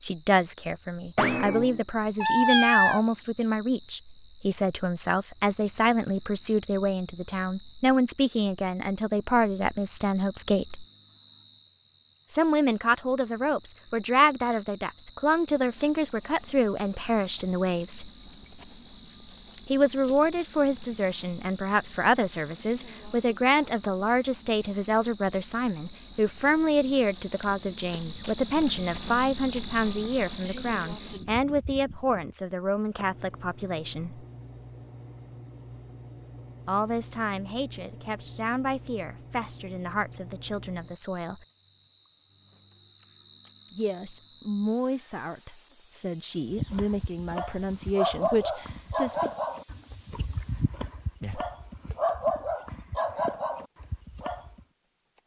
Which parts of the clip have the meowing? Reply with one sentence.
You can hear the meowing from 1.1 to 3.0 s.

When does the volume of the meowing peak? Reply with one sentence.
The volume of the meowing peaks at 2 seconds.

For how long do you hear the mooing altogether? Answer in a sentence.
You can't hear the mooing here.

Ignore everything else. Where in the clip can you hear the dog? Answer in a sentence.
You can hear the dog from 46.5 to 54.6 s.